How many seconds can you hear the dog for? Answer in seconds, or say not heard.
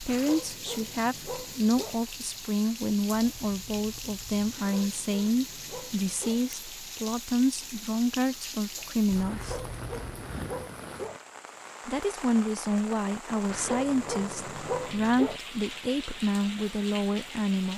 8 s.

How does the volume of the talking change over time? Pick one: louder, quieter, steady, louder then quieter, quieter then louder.
steady.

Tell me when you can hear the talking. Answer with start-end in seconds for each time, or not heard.
0.0-9.6, 11.8-17.7.